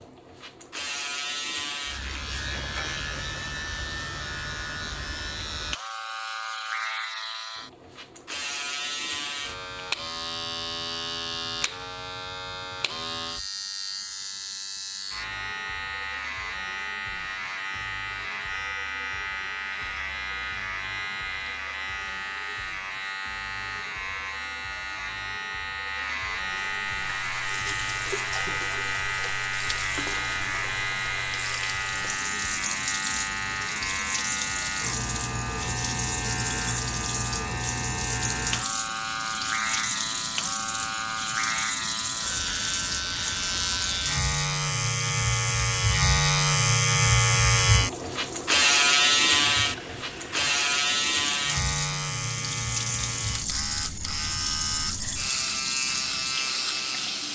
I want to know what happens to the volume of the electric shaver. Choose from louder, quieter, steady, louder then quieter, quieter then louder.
louder.